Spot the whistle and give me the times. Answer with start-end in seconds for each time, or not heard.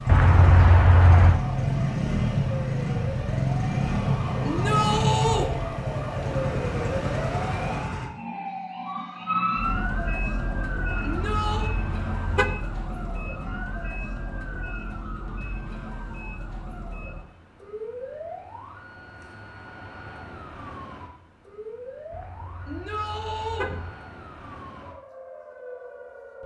not heard.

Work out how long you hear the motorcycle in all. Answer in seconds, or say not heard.
8 s.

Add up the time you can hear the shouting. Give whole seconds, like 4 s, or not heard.
3 s.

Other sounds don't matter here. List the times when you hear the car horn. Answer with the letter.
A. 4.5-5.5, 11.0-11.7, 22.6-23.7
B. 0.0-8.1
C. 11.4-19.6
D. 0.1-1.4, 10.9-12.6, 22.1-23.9
D.